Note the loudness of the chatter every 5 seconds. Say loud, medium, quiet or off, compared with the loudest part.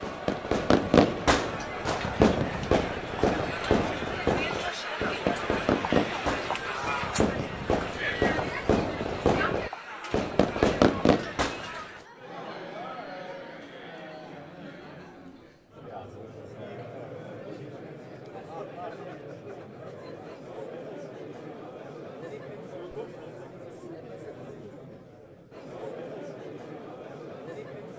loud, loud, medium, medium, medium, medium.